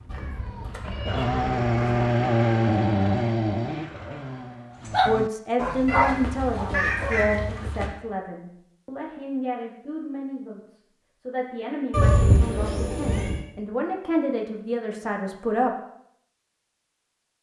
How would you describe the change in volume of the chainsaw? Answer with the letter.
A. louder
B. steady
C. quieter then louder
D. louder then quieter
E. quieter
D.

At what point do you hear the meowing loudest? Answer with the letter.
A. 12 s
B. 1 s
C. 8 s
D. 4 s
A.